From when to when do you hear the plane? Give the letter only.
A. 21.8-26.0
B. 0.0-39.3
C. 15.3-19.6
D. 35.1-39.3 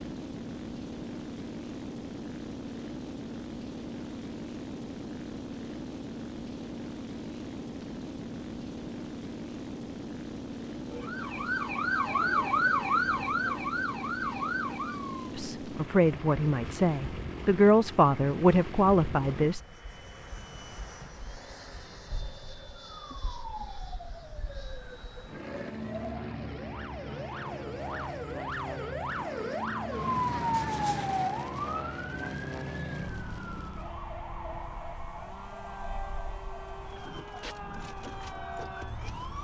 B.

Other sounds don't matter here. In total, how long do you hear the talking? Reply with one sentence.
You can hear the talking for 4 seconds altogether.